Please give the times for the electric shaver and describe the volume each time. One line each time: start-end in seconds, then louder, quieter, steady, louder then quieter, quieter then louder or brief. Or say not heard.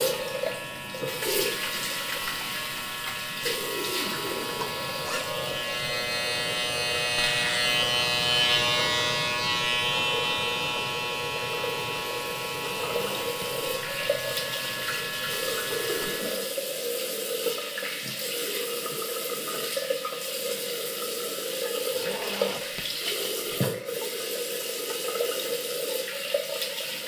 0.0-16.6 louder then quieter.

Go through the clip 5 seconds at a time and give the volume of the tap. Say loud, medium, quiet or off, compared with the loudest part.
loud, medium, loud, loud, loud, loud.